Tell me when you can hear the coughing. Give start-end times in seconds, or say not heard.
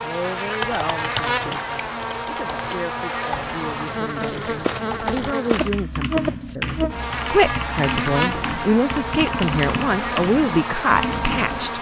not heard.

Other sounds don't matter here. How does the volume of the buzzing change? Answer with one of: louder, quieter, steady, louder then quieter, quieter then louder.
steady.